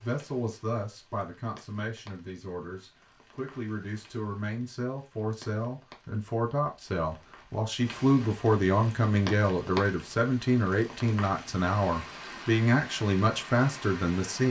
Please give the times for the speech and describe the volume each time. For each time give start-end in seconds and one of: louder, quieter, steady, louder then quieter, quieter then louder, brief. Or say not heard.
0.0-14.4 louder.